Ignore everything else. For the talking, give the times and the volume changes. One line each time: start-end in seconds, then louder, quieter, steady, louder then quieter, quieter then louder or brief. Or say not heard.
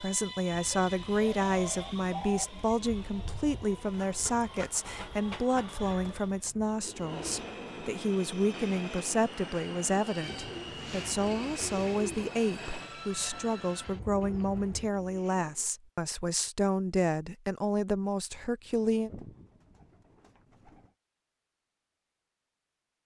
0.0-19.1 steady.